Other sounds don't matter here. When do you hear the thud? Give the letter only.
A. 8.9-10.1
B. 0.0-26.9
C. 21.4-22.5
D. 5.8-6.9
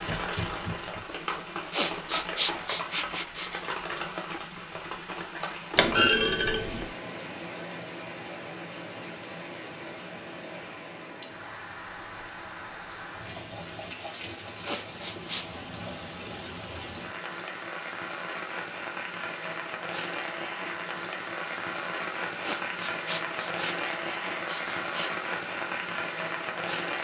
D.